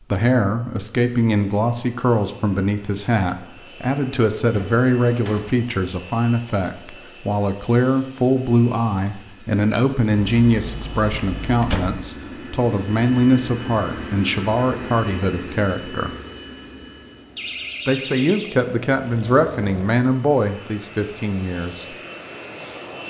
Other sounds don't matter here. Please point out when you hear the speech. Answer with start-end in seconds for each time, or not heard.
0.1-16.1, 17.9-21.9.